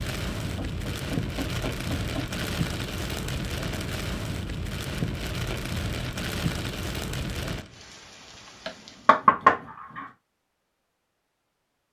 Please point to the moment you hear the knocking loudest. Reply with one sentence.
The loudest moment of the knocking is at 9 seconds.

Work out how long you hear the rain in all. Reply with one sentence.
You can hear the rain for 9 seconds altogether.